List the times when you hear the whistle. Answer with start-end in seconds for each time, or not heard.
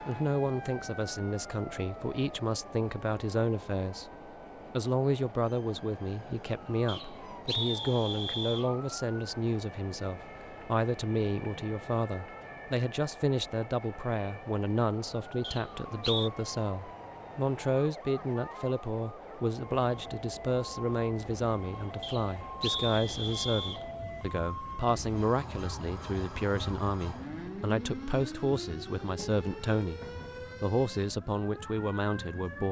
6.8-8.7, 15.4-16.3, 22.0-23.8.